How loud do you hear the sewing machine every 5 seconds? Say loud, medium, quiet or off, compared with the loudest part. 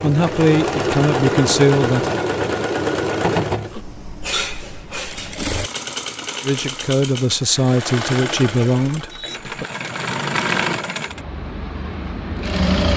loud, medium, loud.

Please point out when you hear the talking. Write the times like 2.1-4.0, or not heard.
0.0-2.1, 6.5-9.7.